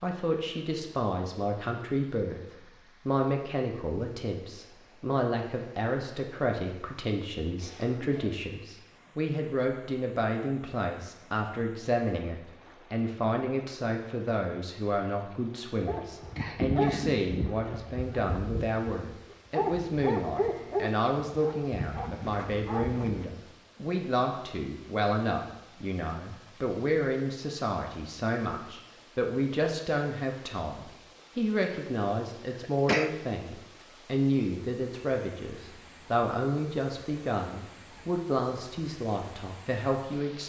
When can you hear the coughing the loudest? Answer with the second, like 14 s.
33 s.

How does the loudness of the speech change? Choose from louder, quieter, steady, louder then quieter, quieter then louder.
steady.